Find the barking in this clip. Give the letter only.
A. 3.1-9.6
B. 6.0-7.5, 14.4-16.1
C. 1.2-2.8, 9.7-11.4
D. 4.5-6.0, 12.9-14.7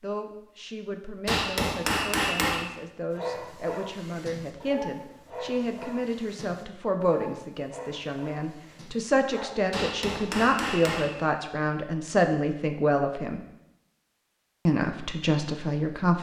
A.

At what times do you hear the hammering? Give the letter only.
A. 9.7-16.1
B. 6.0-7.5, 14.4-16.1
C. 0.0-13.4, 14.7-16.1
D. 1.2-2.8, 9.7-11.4
D.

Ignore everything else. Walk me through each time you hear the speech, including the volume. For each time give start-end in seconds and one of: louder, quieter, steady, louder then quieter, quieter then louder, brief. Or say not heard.
0.0-13.4 louder
14.7-16.1 brief.